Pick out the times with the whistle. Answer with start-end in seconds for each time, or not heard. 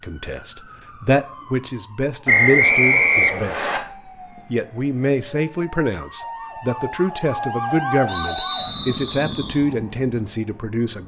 2.2-3.8, 8.1-9.6.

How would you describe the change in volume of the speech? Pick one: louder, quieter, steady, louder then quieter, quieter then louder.
steady.